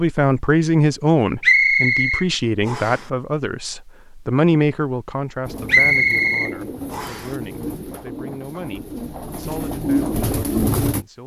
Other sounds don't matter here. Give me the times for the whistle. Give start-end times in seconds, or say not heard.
1.4-3.0, 5.7-7.3.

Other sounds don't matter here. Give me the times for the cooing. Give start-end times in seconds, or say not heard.
5.5-11.1.